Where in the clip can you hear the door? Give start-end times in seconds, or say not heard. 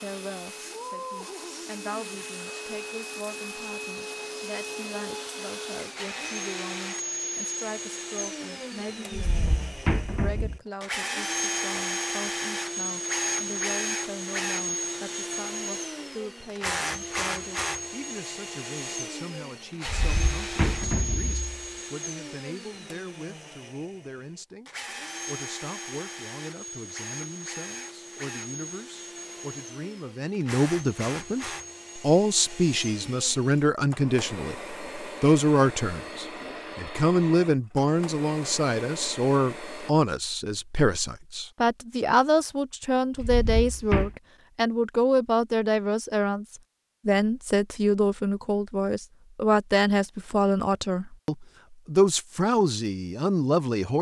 9.1-10.6, 19.9-21.6, 43.1-44.1.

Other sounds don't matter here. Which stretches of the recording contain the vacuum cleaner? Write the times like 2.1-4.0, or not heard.
0.0-40.0.